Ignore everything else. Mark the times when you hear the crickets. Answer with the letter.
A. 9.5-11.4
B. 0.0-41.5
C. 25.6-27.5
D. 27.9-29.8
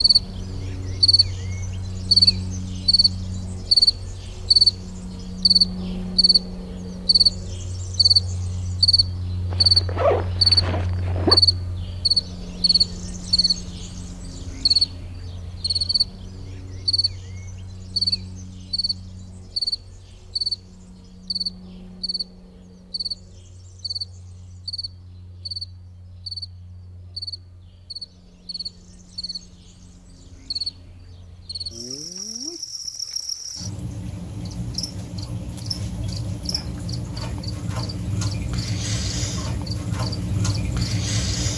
B.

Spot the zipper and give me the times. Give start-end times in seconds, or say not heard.
9.5-11.4.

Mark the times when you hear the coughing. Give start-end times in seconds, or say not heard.
not heard.